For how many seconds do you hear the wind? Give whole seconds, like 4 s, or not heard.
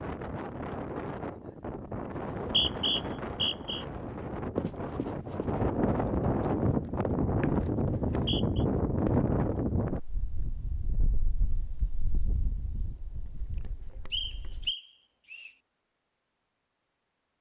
15 s.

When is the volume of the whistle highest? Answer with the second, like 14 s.
3 s.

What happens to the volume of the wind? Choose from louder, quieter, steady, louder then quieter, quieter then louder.
louder then quieter.